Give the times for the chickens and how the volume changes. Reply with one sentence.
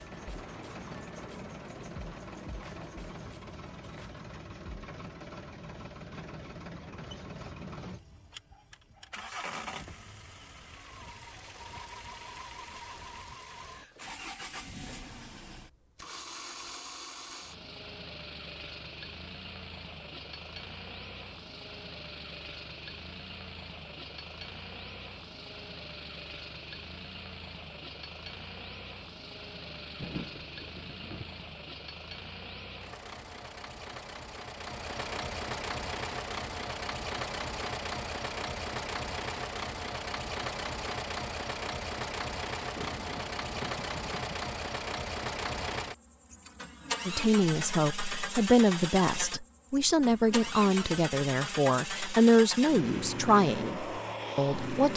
The chickens can't be heard in this clip.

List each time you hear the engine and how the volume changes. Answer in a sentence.
You can hear the engine from 0.0 to 54.9 s, getting louder.